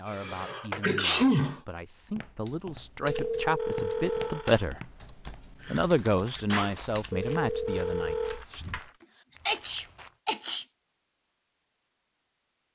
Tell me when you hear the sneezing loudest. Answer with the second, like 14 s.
1 s.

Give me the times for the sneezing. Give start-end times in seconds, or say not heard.
0.1-1.6, 5.6-6.8, 9.4-10.7.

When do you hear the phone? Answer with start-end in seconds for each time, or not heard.
3.0-4.7, 7.1-8.4.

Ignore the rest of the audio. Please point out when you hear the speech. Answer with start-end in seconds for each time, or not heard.
0.0-4.9, 5.7-8.7.